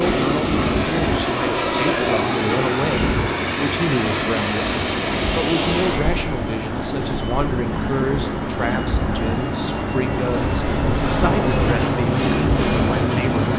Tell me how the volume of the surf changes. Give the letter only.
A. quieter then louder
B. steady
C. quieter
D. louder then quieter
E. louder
B.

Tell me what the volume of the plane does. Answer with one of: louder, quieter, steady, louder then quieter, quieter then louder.
quieter then louder.